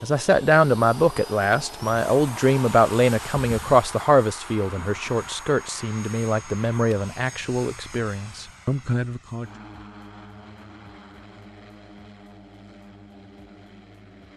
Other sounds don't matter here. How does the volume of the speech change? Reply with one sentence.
The volume of the speech goes down.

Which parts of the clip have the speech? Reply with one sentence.
You can hear the speech from 0.0 to 9.5 s.